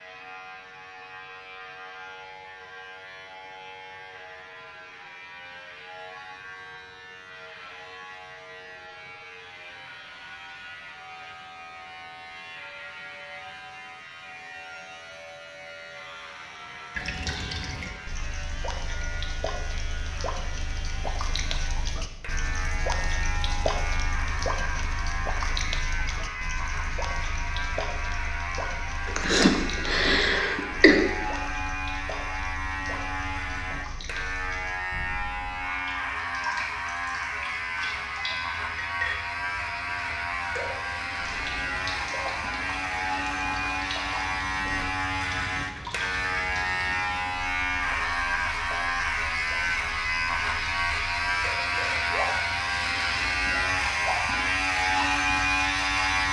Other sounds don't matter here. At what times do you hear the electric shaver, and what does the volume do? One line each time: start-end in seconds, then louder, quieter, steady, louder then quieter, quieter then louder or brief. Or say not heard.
0.0-56.2 louder.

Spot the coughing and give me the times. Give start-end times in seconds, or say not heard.
29.1-31.0.